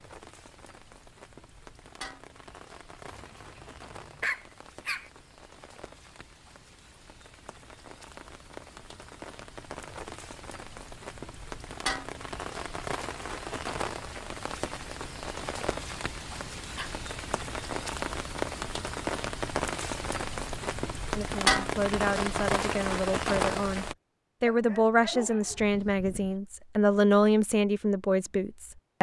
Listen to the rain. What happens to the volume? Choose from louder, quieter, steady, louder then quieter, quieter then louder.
louder.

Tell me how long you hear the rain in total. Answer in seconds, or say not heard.
24 s.